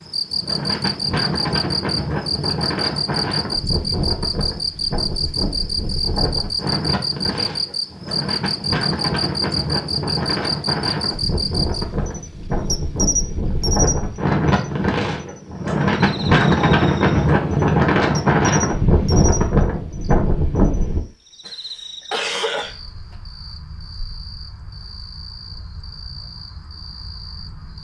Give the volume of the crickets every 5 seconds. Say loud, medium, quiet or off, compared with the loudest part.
loud, loud, loud, medium, quiet, quiet.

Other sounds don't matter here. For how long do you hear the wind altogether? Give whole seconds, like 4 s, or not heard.
21 s.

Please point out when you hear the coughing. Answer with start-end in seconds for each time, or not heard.
21.4-22.8.